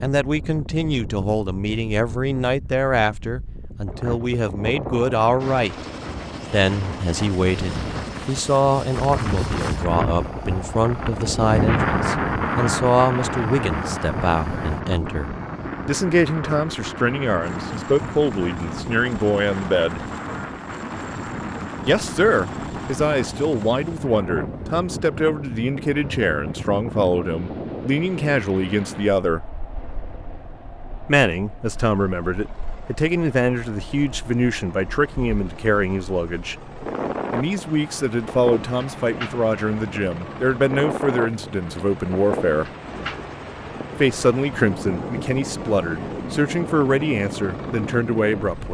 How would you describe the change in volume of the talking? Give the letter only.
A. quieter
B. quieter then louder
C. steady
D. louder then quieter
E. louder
C.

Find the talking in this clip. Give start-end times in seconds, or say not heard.
0.0-5.8, 6.5-20.0, 21.9-29.4, 31.1-36.5, 37.3-42.7, 44.0-48.6.